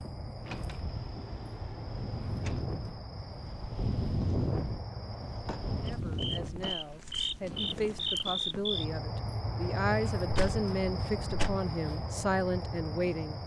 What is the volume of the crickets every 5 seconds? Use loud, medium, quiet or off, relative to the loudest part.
medium, loud, loud.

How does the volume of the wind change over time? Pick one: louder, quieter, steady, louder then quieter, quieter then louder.
louder then quieter.